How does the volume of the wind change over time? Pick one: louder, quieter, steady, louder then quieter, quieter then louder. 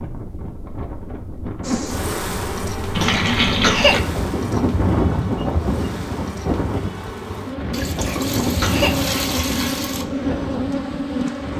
louder then quieter.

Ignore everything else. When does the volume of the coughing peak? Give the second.
4 s.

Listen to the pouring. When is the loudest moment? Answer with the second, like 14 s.
4 s.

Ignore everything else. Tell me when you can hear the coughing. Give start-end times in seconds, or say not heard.
3.0-4.0, 8.0-9.1.